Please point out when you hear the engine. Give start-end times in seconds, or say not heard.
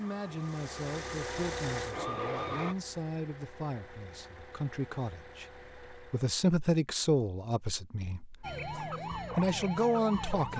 0.0-6.3.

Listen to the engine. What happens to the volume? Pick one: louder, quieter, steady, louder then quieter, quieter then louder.
quieter.